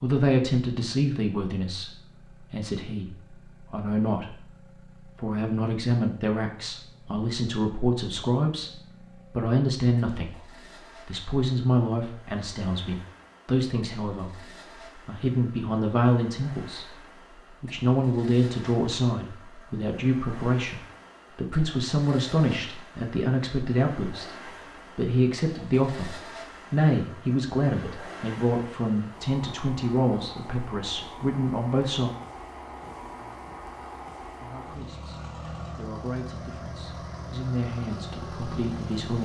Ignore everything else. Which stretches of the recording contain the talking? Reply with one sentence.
You can hear the talking from 0.0 to 24.4 s, from 24.9 to 32.1 s and from 34.4 to 39.2 s.